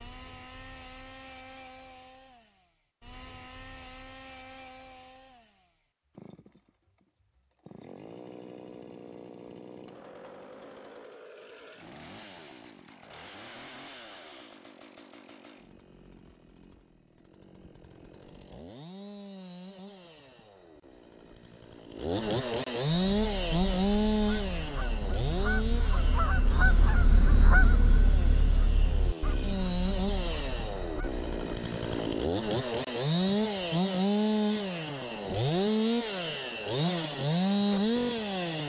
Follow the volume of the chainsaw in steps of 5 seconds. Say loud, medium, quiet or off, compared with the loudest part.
quiet, quiet, quiet, quiet, loud, medium, loud, loud.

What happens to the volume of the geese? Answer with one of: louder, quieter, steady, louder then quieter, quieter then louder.
louder then quieter.